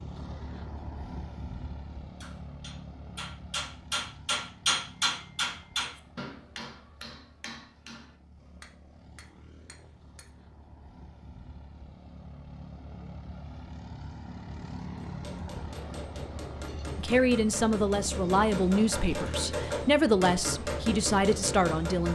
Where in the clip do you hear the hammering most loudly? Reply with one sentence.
The volume of the hammering peaks at 5 seconds.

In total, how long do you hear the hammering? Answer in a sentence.
You can hear the hammering for 15 seconds altogether.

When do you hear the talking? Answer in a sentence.
You can hear the talking from 16.9 to 22.1 s.